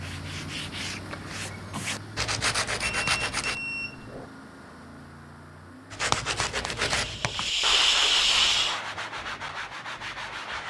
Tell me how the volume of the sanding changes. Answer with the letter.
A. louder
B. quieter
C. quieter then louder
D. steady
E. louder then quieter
E.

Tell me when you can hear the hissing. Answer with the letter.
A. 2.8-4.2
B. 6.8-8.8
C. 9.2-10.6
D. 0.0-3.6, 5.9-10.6
B.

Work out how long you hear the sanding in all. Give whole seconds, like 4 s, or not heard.
8 s.